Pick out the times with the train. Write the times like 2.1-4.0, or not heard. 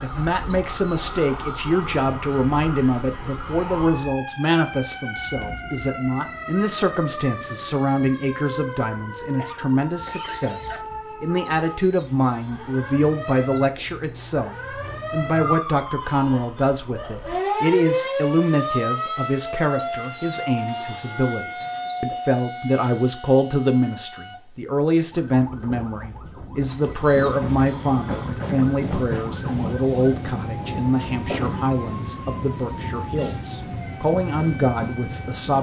27.1-35.5.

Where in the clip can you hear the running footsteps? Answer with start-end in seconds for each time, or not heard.
not heard.